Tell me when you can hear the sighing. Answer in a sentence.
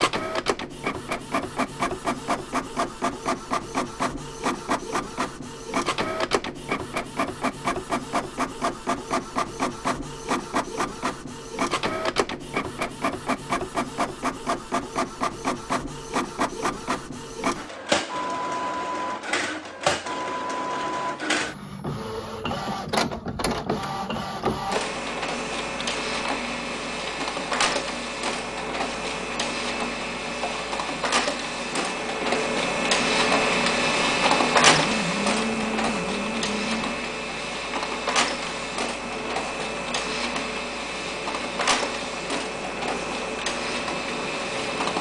The sighing can be heard from 34.6 to 37.0 s.